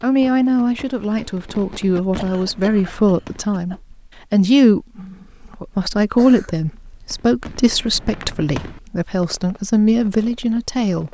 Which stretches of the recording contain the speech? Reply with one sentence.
The speech can be heard from 0.0 to 11.0 s.